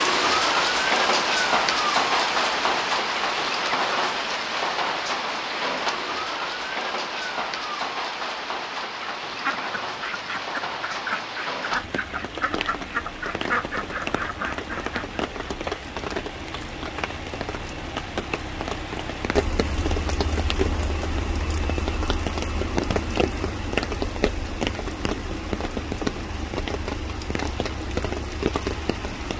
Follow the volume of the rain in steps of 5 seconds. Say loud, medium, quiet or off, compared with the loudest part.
loud, medium, medium, medium, medium, medium.